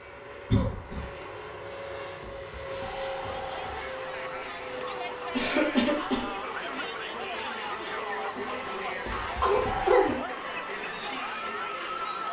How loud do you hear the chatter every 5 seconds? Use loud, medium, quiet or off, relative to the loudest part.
medium, loud, loud.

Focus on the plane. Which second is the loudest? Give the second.
3 s.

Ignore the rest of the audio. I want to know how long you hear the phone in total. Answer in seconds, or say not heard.
3 s.